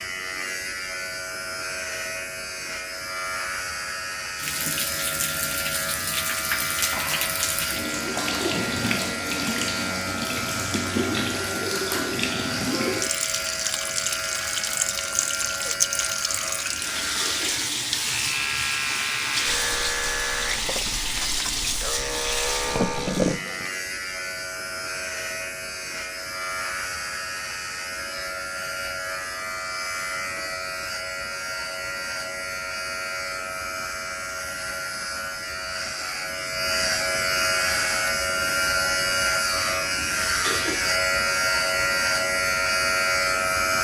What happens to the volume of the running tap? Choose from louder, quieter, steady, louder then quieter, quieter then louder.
steady.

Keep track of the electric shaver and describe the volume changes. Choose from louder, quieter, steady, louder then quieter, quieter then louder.
louder.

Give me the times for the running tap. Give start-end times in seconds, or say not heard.
4.3-23.7.